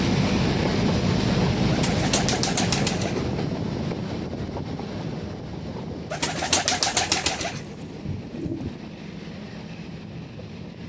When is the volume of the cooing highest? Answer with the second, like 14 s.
7 s.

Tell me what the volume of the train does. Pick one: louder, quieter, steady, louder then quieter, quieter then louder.
quieter.